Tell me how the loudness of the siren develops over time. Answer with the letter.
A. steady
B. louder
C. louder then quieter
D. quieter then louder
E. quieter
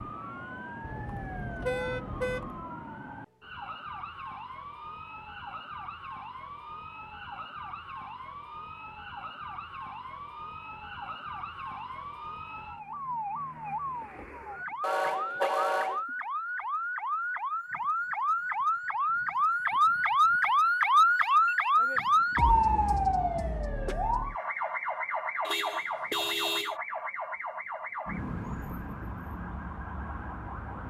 C.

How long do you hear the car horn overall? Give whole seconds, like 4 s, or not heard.
4 s.